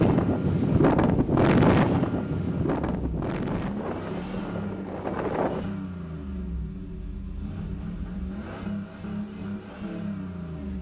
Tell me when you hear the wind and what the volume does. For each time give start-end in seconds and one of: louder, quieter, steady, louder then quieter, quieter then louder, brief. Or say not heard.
0.0-5.7 quieter.